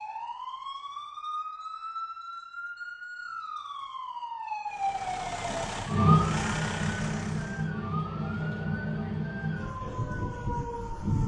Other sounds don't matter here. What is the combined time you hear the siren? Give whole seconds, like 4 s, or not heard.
11 s.